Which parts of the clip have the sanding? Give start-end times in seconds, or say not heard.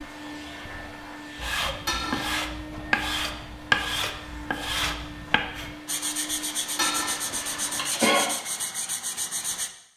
1.4-9.7.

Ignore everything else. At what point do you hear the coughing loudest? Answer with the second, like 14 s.
8 s.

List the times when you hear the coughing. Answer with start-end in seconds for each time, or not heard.
1.9-2.3, 6.8-8.2.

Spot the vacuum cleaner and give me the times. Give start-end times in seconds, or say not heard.
0.0-7.9.